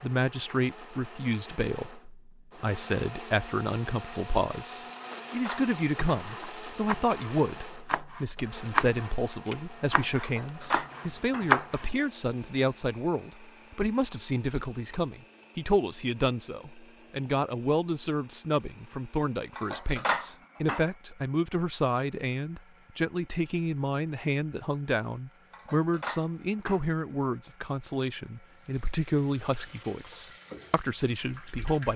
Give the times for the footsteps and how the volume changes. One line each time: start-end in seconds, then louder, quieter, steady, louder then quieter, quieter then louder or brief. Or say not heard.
not heard.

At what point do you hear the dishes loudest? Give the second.
20 s.